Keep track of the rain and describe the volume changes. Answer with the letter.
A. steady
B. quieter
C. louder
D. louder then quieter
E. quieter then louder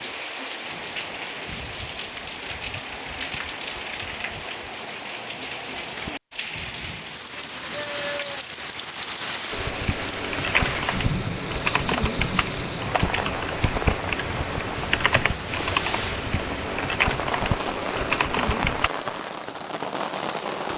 A.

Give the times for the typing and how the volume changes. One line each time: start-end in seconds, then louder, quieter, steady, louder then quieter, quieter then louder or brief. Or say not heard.
9.5-18.9 steady.